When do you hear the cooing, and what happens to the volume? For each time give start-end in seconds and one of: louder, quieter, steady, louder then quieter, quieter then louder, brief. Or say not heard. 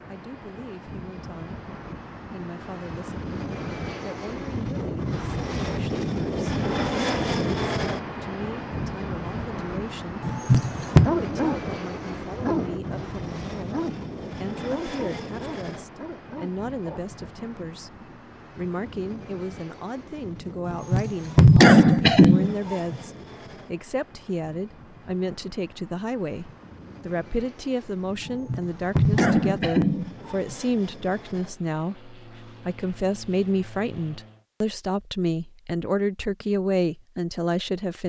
not heard.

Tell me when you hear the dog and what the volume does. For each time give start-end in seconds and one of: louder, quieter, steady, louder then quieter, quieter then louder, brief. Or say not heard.
10.8-17.1 quieter.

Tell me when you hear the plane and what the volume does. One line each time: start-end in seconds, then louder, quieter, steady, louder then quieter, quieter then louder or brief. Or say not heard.
0.0-34.5 quieter.